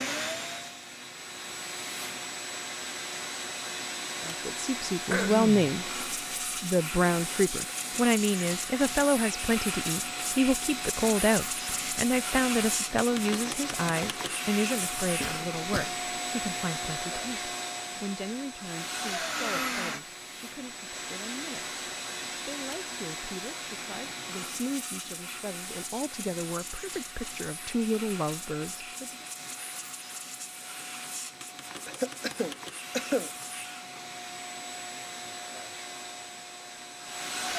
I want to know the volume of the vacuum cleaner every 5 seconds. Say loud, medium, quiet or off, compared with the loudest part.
loud, loud, loud, loud, medium, medium, medium, medium.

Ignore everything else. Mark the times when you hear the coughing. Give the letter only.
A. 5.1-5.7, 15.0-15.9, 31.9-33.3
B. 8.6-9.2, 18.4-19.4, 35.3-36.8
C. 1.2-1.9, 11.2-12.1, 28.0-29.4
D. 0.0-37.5
A.